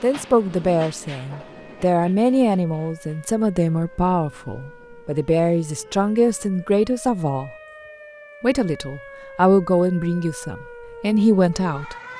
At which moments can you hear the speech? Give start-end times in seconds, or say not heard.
0.0-7.5, 8.4-11.9.